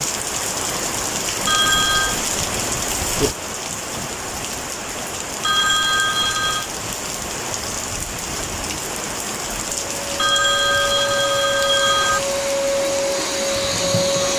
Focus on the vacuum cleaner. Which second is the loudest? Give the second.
14 s.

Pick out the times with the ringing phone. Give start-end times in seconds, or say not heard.
1.4-2.2, 5.4-6.7, 10.2-12.2.